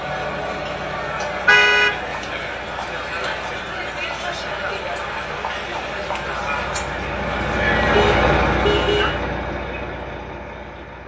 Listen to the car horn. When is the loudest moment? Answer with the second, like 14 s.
2 s.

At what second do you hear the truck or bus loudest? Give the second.
8 s.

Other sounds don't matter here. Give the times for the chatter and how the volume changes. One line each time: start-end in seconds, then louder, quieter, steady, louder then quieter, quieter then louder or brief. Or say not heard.
0.0-9.2 steady.